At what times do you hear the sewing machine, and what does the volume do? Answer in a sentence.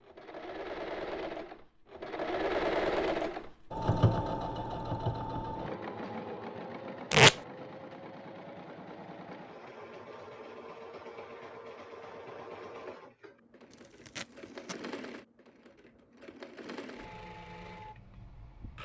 The sewing machine can be heard from 0.0 to 18.8 s, getting quieter.